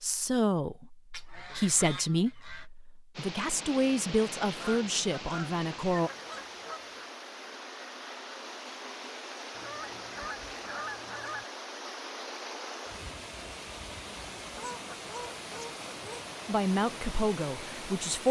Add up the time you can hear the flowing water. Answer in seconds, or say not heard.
15 s.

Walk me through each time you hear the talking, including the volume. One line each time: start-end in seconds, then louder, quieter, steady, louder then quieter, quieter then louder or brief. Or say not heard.
0.0-6.1 quieter then louder
16.4-18.2 brief.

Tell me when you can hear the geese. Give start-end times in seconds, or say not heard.
1.1-2.7, 4.6-7.1, 9.5-11.4, 14.5-16.2.